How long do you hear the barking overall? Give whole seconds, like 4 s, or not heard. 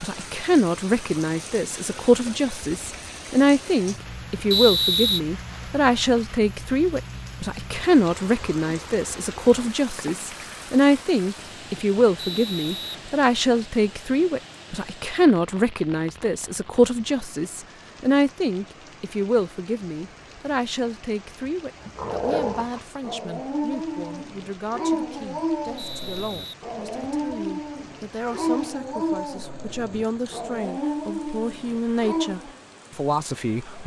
11 s.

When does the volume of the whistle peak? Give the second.
5 s.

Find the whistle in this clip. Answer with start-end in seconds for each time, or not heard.
4.5-5.2, 12.2-12.9, 25.8-27.2.